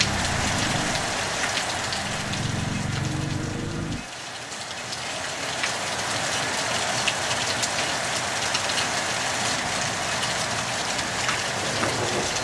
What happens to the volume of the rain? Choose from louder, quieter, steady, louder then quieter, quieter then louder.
quieter then louder.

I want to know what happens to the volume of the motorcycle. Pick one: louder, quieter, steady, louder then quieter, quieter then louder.
quieter then louder.